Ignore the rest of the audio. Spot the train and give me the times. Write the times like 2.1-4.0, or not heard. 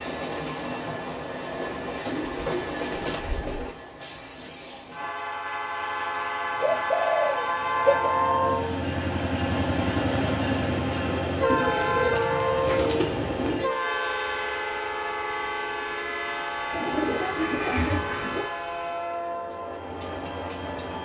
0.0-21.0.